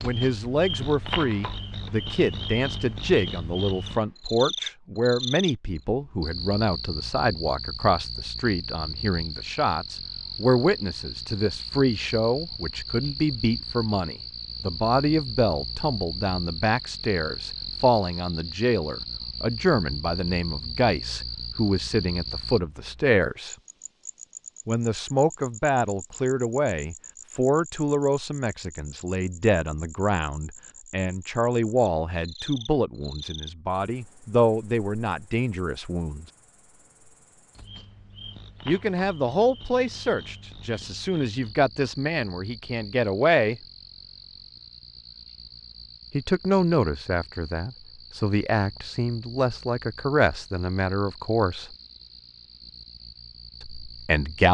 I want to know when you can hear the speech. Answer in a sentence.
You can hear the speech from 0.0 to 23.6 s, from 24.6 to 36.2 s, from 38.6 to 43.6 s, from 46.1 to 51.7 s and from 53.6 to 54.4 s.